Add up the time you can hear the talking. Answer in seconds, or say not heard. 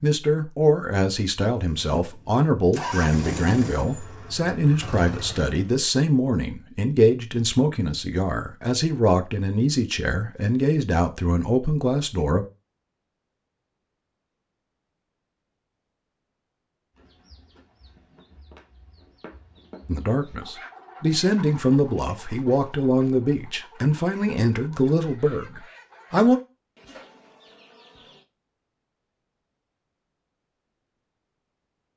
19 s.